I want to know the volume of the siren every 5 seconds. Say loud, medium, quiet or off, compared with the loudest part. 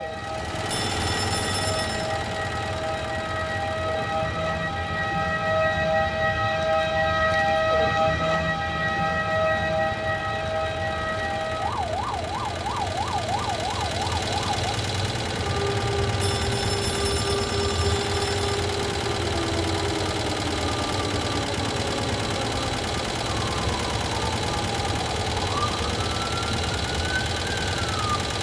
medium, loud, medium, medium, medium, medium.